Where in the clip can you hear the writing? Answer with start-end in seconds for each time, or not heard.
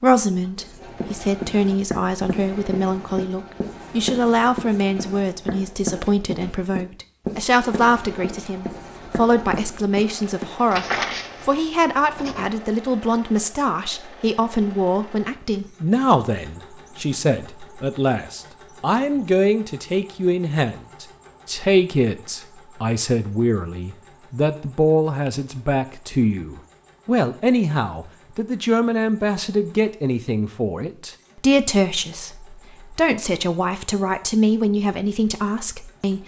0.6-12.5.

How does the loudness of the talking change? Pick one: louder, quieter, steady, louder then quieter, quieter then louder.
steady.